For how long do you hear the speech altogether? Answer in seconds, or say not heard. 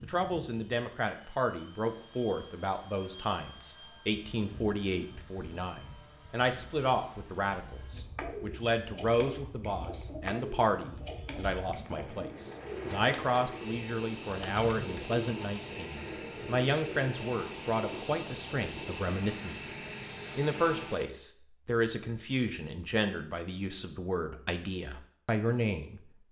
26 s.